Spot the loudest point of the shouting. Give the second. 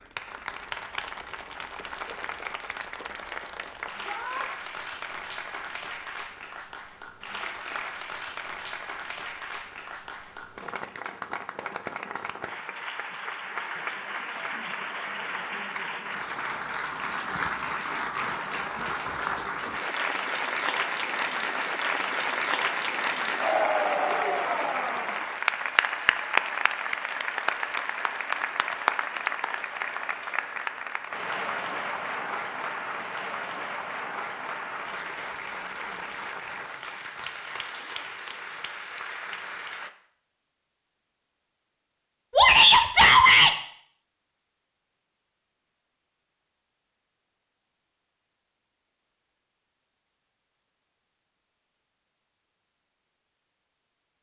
43 s.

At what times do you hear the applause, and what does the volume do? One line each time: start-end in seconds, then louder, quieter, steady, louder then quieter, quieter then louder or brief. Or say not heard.
0.0-39.9 louder then quieter.